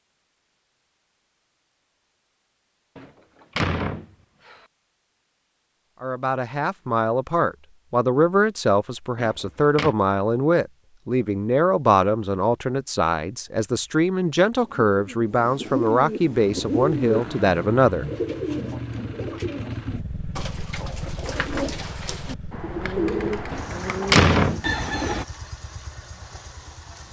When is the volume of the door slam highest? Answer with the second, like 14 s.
24 s.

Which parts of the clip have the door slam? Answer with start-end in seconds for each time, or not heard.
3.0-4.6, 9.2-9.9, 23.5-25.1.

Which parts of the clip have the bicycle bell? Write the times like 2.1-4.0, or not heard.
not heard.